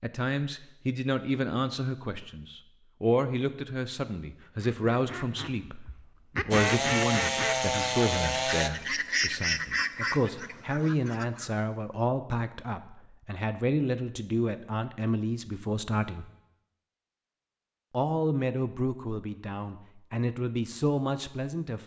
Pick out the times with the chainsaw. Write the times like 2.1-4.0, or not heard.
6.5-8.7.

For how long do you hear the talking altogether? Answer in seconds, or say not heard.
20 s.